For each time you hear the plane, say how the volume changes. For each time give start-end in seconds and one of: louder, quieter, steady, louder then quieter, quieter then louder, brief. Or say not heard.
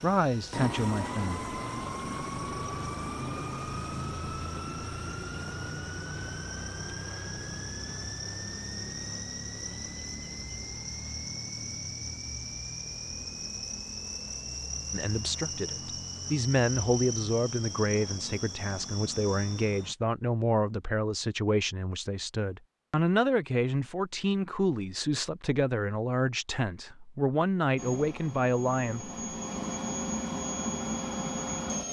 0.0-19.9 quieter
27.8-31.8 louder.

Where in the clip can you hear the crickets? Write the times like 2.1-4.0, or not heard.
0.0-19.9.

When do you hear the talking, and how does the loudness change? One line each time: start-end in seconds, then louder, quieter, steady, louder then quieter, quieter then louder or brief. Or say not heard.
0.0-1.4 brief
14.9-29.1 steady.